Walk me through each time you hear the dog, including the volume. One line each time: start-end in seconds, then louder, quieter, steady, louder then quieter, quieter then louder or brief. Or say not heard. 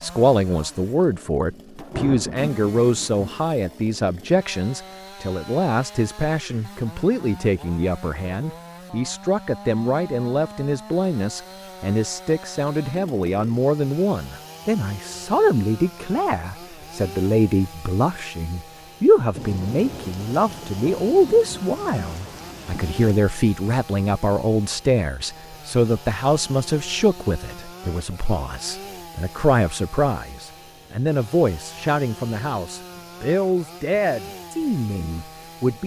not heard.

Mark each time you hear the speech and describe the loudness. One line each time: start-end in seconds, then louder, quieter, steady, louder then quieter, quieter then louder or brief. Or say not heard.
0.0-35.8 steady.